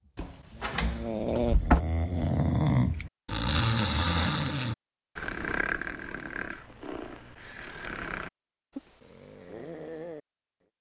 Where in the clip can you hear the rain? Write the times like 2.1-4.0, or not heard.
not heard.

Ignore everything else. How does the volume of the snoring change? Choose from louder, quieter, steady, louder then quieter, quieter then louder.
quieter.